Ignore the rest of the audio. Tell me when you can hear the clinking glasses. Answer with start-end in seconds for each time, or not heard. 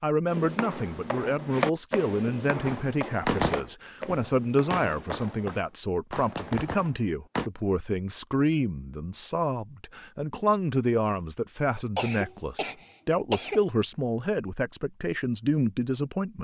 not heard.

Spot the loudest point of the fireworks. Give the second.
3 s.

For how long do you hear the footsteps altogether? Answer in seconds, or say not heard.
5 s.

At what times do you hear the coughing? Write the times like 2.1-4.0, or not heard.
11.9-13.7.